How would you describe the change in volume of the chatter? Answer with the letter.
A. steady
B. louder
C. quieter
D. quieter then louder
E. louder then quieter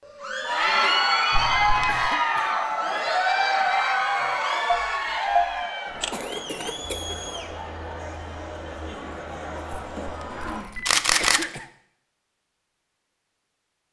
C.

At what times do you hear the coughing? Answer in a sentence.
You can hear the coughing from 1.9 to 3.0 s, from 6.1 to 7.2 s and from 10.3 to 11.7 s.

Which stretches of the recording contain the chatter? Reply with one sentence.
The chatter can be heard from 0.1 to 10.7 s.